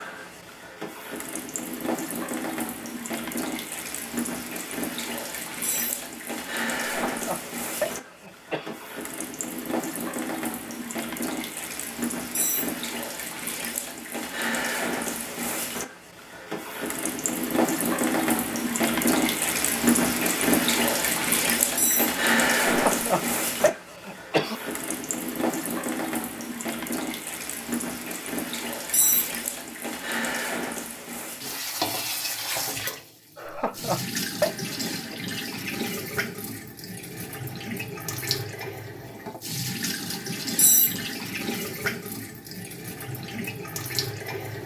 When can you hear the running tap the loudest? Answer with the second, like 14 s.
20 s.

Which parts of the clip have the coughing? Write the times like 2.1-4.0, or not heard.
6.8-8.8, 22.7-24.6, 33.4-35.1.